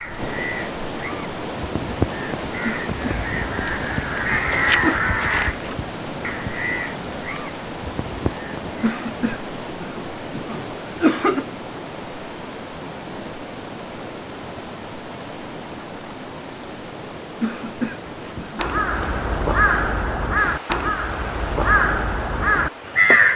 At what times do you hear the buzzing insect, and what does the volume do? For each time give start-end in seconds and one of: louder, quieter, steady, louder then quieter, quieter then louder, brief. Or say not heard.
not heard.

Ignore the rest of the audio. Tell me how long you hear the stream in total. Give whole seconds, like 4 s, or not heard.
23 s.